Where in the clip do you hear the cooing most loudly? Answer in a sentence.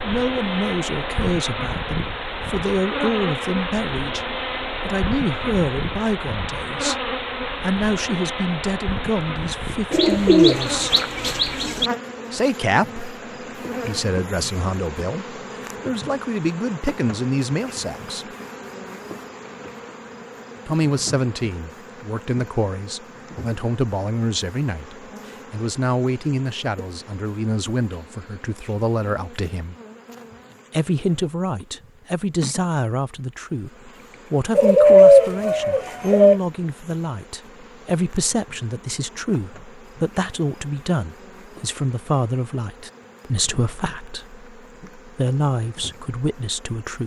The volume of the cooing peaks at 35 seconds.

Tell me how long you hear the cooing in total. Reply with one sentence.
You can hear the cooing for 4 seconds altogether.